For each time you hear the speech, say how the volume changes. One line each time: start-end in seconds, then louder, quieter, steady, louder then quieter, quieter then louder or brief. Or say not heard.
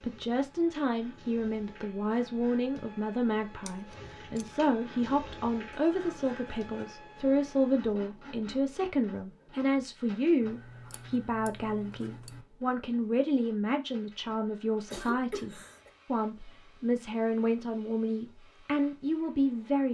0.0-19.8 steady.